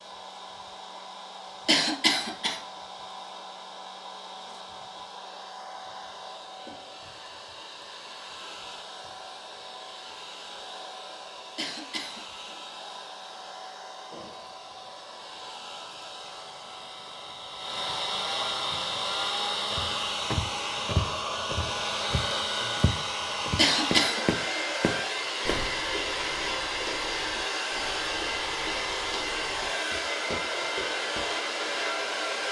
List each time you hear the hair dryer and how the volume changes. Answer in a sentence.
The hair dryer can be heard from 0.0 to 32.4 s, getting louder.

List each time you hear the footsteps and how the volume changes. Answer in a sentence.
You can hear the footsteps from 19.7 to 31.2 s, getting quieter.